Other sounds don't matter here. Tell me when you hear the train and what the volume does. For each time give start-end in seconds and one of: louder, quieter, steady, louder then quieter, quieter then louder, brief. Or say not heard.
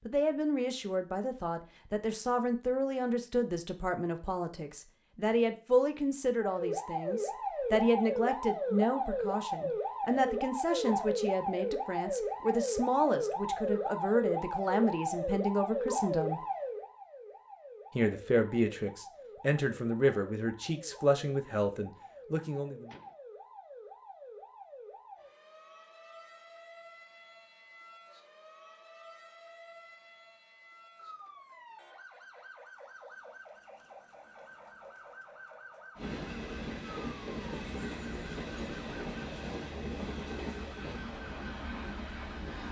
36.0-42.6 steady.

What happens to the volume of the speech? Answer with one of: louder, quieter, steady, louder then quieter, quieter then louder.
steady.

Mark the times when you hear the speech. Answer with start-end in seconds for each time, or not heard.
0.1-16.4, 17.9-22.9.